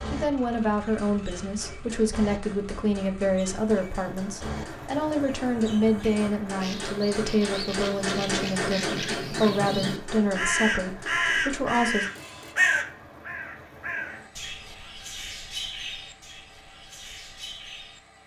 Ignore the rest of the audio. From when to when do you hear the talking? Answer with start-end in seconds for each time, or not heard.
0.1-12.1.